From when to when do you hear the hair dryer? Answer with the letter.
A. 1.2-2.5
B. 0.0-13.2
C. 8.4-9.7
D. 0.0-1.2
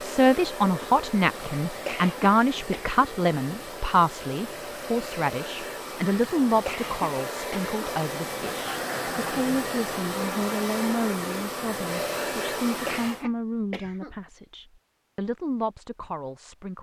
B.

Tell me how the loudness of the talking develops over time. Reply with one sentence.
The loudness of the talking goes down.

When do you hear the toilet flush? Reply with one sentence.
The toilet flush can be heard from 8.4 to 9.7 s.